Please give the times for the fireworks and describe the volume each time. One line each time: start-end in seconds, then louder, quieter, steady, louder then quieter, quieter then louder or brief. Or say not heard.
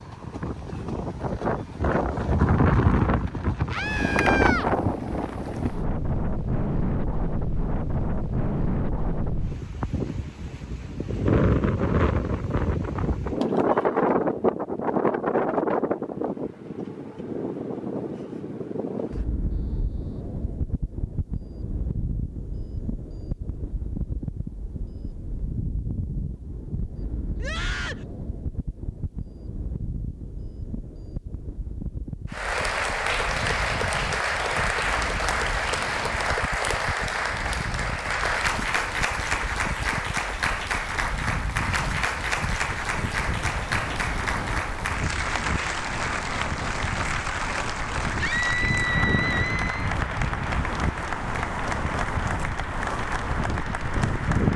not heard.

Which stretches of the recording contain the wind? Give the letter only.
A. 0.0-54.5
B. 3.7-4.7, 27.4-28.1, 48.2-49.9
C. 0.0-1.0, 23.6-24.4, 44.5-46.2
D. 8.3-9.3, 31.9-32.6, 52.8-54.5
A.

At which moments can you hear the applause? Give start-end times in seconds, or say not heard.
32.3-54.5.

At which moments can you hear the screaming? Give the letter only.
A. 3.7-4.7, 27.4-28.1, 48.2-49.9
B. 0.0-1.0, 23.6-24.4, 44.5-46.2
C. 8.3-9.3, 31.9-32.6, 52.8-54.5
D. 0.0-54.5
A.